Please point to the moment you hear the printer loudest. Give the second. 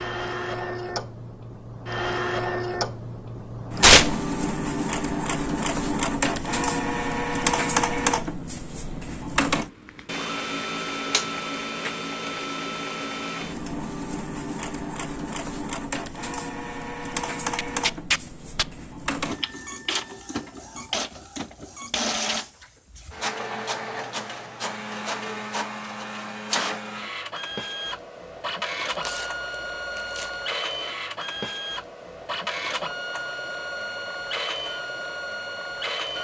8 s.